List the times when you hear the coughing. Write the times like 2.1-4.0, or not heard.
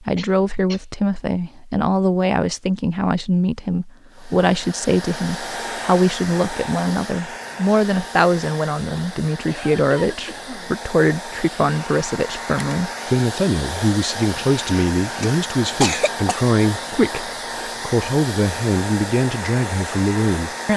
0.1-0.8, 8.9-10.8, 15.2-16.4.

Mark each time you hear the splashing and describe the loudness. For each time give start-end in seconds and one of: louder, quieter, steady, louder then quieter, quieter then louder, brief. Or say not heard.
not heard.